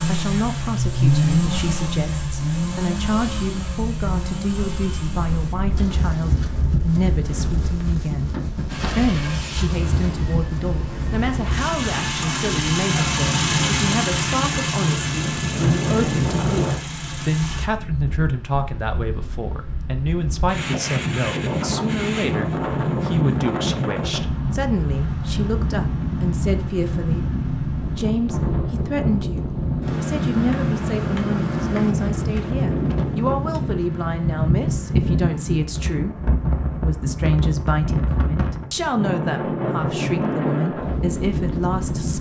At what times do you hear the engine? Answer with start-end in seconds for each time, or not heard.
0.0-5.5, 8.7-17.6.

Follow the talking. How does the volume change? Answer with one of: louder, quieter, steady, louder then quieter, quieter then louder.
steady.